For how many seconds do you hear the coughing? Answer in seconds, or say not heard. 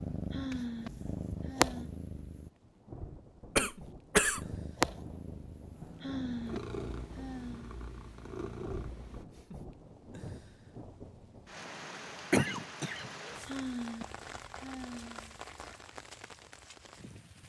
2 s.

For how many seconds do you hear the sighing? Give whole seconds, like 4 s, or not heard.
5 s.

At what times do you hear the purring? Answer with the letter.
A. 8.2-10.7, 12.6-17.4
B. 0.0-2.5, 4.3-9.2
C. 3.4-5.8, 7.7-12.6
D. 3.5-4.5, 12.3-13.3
B.